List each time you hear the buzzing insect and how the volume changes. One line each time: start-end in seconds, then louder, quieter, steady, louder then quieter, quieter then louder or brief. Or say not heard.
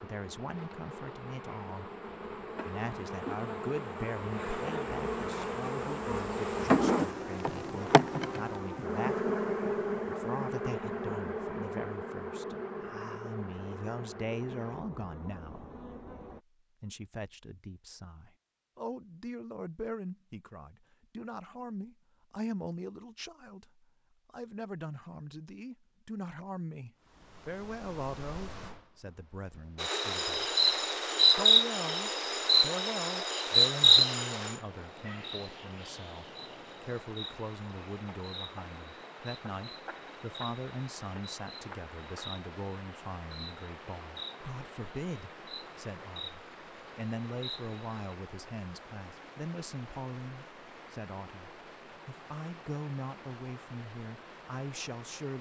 0.0-16.4 louder then quieter
29.8-48.0 quieter.